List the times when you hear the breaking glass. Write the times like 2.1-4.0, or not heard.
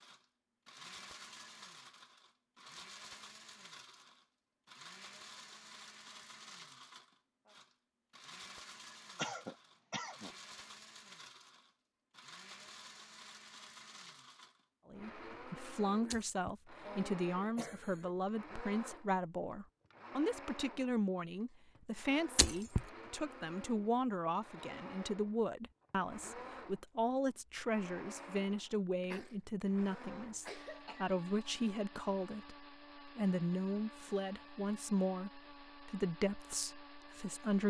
16.1-16.6, 22.4-22.9.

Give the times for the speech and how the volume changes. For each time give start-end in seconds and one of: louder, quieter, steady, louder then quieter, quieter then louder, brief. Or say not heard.
14.9-37.6 steady.